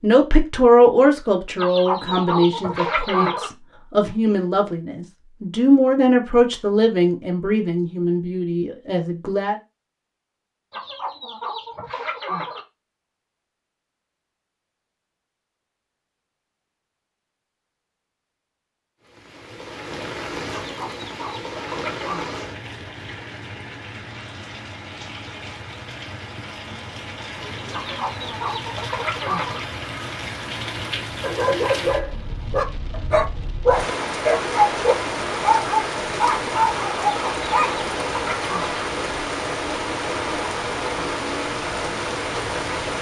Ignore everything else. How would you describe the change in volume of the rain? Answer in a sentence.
The loudness of the rain goes up.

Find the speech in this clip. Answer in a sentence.
The speech can be heard from 0.0 to 9.6 s.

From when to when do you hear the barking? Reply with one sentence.
The barking can be heard from 31.2 to 37.8 s.